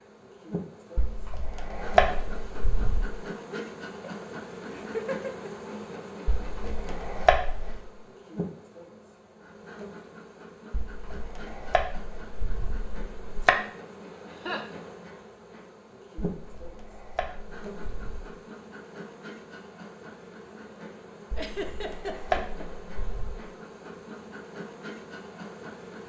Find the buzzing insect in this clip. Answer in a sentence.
You can hear the buzzing insect from 0.0 to 26.0 s.